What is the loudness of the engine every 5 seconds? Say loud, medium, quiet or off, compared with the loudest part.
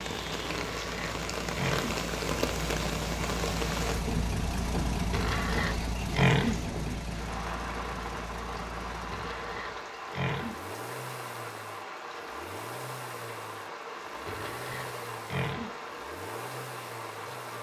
loud, loud, medium, medium.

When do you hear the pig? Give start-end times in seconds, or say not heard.
0.5-2.0, 5.1-6.6, 9.1-10.6, 14.2-15.8.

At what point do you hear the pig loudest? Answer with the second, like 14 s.
6 s.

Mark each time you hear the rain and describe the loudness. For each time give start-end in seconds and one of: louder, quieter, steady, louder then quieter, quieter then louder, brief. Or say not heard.
0.0-17.5 quieter.